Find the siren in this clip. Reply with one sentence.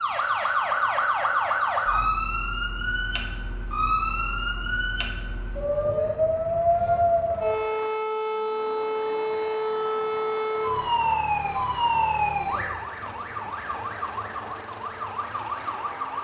You can hear the siren from 0.0 to 16.1 s.